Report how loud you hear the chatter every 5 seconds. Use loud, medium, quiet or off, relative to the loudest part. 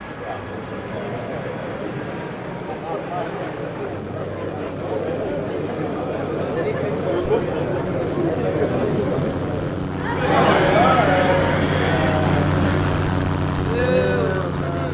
medium, loud, loud.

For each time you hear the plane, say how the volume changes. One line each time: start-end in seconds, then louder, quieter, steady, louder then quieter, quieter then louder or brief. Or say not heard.
0.0-14.8 louder.